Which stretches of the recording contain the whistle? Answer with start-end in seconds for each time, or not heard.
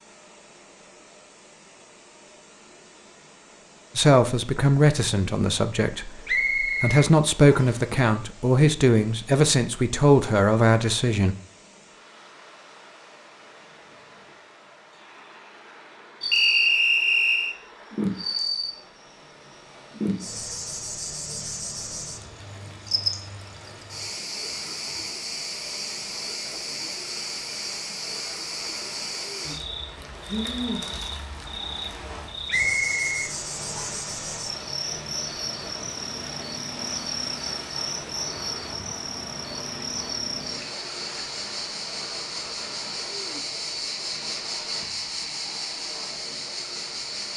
6.2-7.8, 16.3-17.6, 32.5-34.0.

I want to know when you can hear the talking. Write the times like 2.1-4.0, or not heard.
4.0-11.3.